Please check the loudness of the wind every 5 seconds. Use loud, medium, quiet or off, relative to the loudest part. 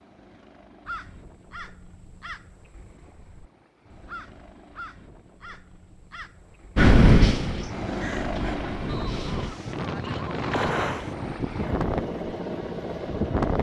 off, loud, medium.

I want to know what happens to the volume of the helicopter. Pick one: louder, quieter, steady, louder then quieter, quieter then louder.
louder.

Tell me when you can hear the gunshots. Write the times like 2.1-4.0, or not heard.
10.5-11.1.